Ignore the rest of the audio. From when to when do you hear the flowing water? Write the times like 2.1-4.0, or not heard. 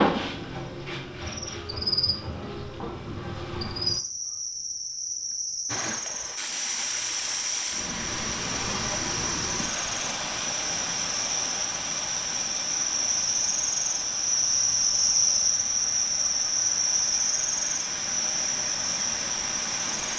5.7-20.1.